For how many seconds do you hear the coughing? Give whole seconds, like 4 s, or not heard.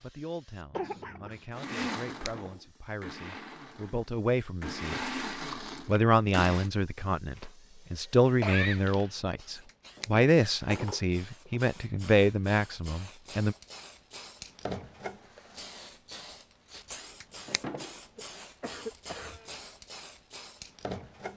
3 s.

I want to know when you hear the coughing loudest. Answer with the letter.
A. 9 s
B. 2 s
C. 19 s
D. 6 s
A.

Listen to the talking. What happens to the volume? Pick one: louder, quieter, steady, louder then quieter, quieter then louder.
louder.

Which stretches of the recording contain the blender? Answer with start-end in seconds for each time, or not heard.
1.5-6.7.